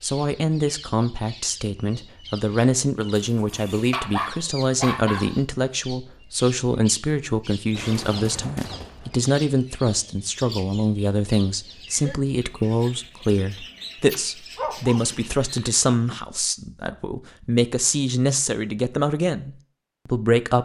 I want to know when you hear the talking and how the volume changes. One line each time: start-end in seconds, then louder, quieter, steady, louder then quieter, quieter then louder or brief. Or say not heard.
0.0-20.6 steady.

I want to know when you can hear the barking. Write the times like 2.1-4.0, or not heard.
3.2-5.4, 14.1-15.0.